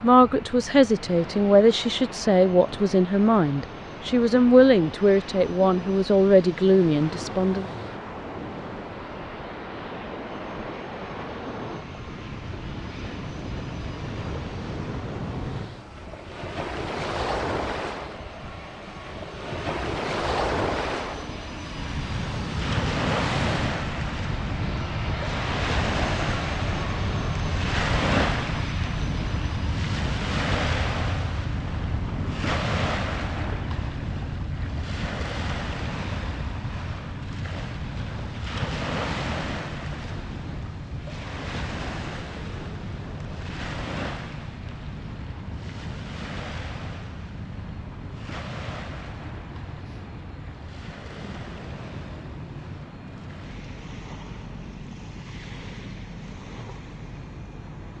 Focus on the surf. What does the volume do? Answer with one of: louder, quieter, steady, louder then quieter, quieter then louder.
louder then quieter.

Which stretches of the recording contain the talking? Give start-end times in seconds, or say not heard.
0.0-7.7.